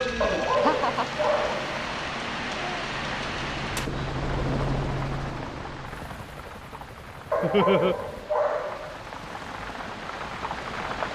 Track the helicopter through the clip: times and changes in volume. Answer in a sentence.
You can hear the helicopter from 0.0 to 10.9 s, getting louder then quieter.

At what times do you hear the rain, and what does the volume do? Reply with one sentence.
You can hear the rain from 0.0 to 11.1 s, getting quieter then louder.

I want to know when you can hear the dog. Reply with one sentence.
You can hear the dog from 0.2 to 1.8 s and from 7.3 to 9.0 s.